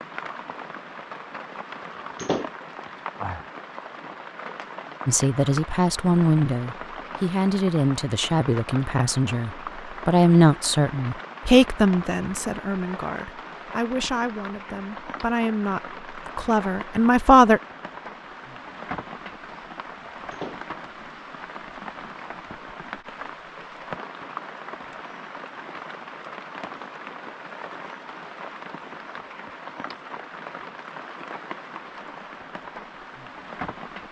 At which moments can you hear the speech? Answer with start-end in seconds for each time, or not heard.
5.0-17.6.